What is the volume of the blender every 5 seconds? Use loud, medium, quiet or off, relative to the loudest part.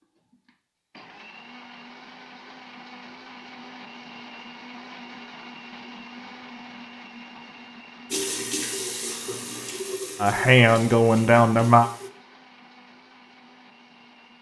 loud, loud, medium.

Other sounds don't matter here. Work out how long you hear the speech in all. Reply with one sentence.
The speech can be heard for 2 seconds in total.